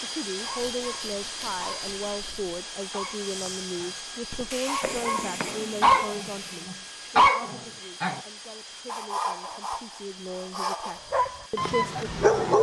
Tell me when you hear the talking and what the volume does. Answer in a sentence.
You can hear the talking from 0.0 to 12.5 s, getting quieter then louder.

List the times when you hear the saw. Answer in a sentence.
The saw can be heard from 0.5 to 2.5 s, from 4.5 to 6.7 s and from 8.8 to 11.0 s.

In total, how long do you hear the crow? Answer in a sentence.
The crow can't be heard in this clip.